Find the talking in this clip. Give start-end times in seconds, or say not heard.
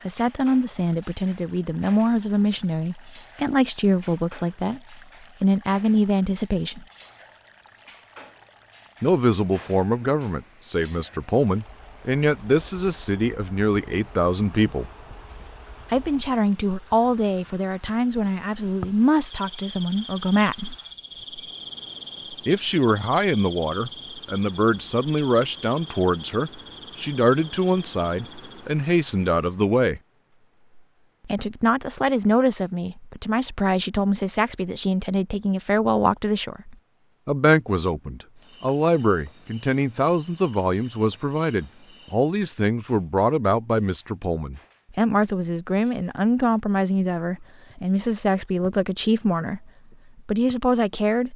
0.1-6.8, 9.0-14.9, 15.9-20.8, 22.4-30.0, 31.2-51.3.